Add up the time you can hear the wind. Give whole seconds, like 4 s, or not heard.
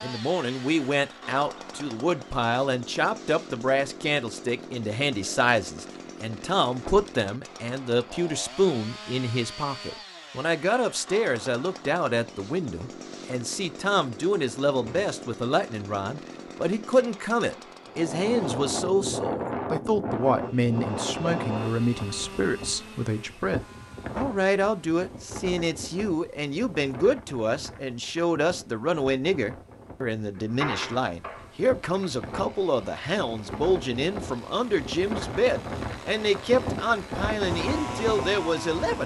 21 s.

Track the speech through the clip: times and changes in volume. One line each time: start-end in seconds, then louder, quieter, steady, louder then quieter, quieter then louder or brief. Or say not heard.
0.0-39.0 steady.